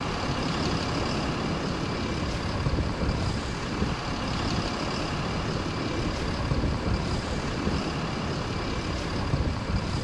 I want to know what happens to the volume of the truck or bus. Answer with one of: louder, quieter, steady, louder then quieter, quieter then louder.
steady.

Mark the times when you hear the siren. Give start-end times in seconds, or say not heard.
not heard.